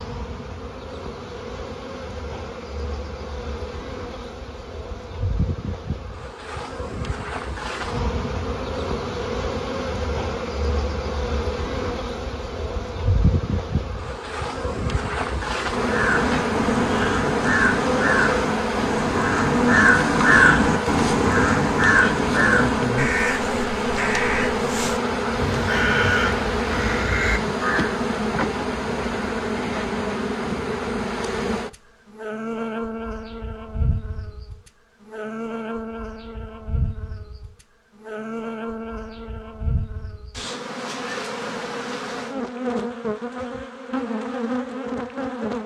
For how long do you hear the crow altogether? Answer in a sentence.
The crow can be heard for 12 seconds in total.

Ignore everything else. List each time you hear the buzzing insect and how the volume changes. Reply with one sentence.
You can hear the buzzing insect from 0.0 to 45.6 s, getting louder then quieter.